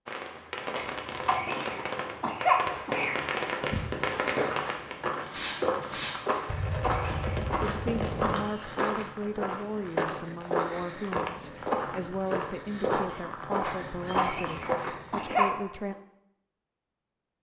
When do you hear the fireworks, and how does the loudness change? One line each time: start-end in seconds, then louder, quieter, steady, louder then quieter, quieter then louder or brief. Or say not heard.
0.1-8.3 steady.